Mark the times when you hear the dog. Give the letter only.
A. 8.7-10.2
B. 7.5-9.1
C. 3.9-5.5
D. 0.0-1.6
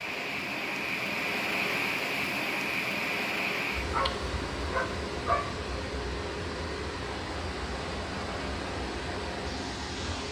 C.